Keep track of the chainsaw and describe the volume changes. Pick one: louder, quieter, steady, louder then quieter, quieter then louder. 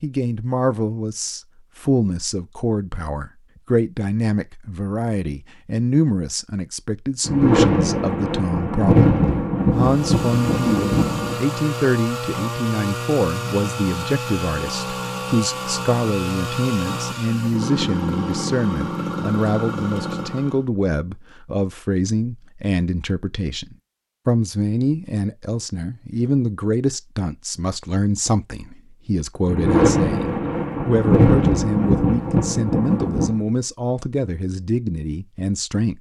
steady.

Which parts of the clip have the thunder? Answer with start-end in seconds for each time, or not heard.
7.2-11.4, 29.4-33.4.